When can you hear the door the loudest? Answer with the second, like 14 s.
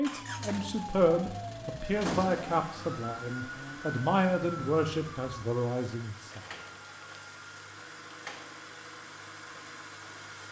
2 s.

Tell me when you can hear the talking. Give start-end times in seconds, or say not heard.
0.0-6.4.